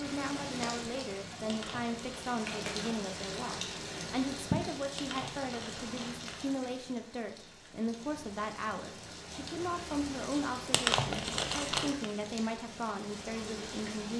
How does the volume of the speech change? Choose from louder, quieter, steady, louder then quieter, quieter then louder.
steady.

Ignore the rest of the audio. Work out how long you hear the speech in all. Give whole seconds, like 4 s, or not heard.
14 s.